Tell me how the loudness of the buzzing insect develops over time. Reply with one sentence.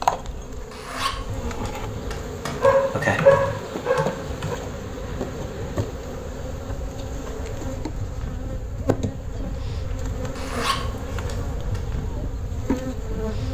The loudness of the buzzing insect stays about the same.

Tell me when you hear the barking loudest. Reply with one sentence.
The volume of the barking peaks at 3 seconds.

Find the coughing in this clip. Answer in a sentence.
The coughing can't be heard in this clip.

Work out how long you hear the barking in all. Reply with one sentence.
The barking can be heard for 2 seconds in total.